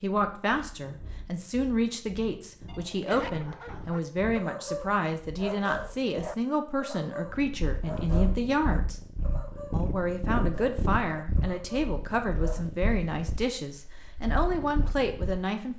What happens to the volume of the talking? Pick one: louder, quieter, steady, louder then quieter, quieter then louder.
steady.